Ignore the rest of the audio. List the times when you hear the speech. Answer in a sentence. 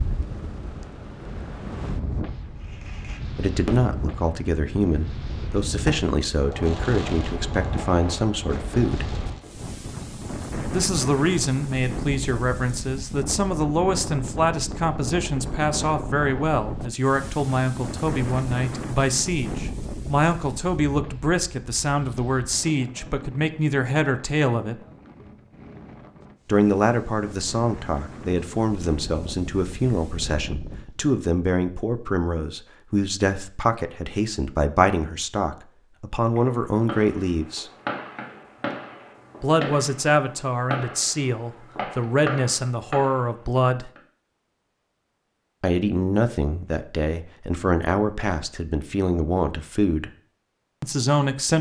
You can hear the speech from 3.4 to 9.1 s, from 10.7 to 24.8 s, from 26.4 to 37.7 s, from 39.4 to 43.9 s, from 45.6 to 50.1 s and from 50.8 to 51.5 s.